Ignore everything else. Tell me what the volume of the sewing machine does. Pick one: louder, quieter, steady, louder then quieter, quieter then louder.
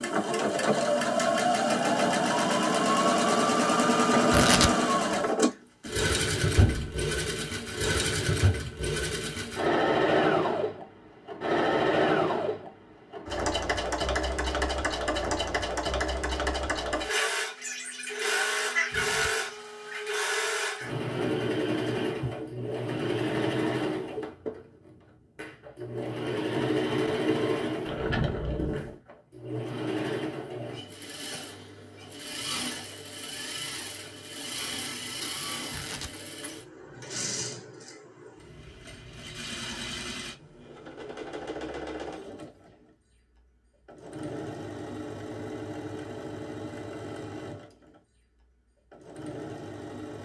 quieter.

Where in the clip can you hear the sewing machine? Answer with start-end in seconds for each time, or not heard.
0.0-50.2.